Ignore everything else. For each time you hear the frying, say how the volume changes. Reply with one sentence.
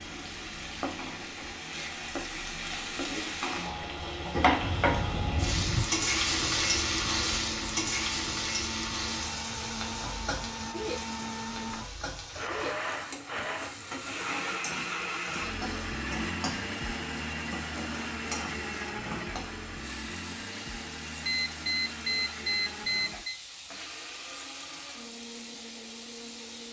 The frying can be heard from 0.0 to 26.6 s, getting quieter.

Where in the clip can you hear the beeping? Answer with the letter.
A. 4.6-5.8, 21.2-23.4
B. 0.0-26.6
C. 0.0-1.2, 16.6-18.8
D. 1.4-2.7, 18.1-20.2
A.